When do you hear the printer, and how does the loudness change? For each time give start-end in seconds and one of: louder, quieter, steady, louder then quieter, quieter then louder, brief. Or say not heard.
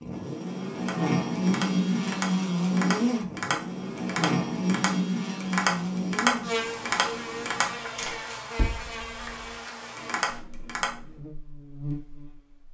not heard.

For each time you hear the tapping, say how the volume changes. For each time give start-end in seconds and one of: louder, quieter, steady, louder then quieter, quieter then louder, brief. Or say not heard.
0.8-11.0 louder then quieter.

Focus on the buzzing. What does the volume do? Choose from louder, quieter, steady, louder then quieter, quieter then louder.
quieter.